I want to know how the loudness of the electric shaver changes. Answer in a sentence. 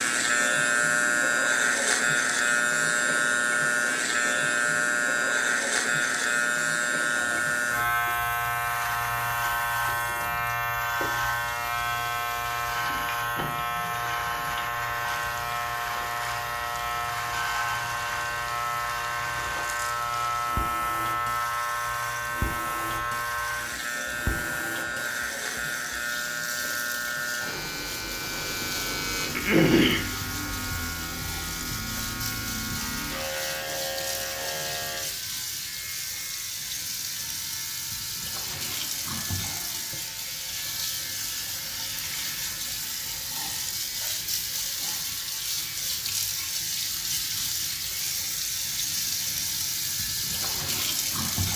The loudness of the electric shaver goes down.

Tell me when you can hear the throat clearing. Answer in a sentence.
You can hear the throat clearing from 28.3 to 30.1 s.